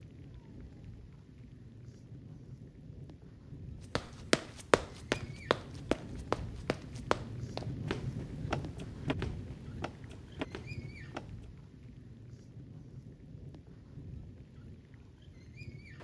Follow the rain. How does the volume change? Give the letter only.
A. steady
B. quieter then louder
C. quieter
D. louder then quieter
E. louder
D.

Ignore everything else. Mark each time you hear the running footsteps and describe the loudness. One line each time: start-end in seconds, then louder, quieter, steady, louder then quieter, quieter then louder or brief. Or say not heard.
4.0-11.3 quieter.